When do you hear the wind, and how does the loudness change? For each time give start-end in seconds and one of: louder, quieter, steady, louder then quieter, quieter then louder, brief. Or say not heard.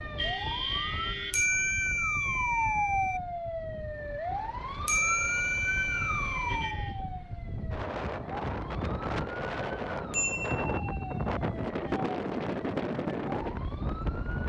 0.0-14.4 louder.